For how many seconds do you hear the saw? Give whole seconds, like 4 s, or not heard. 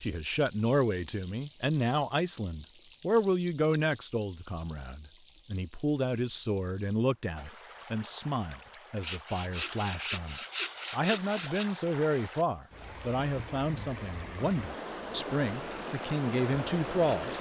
3 s.